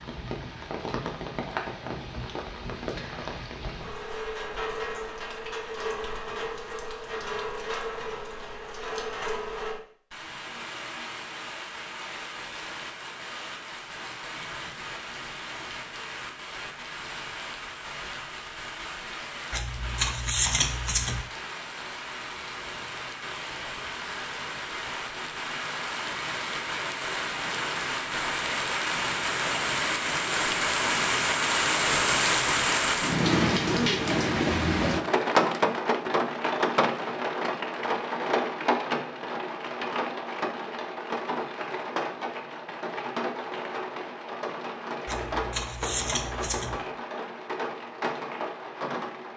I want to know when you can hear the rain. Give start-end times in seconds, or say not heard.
0.0-49.3.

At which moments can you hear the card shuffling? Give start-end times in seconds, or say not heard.
19.5-21.2, 45.0-46.8.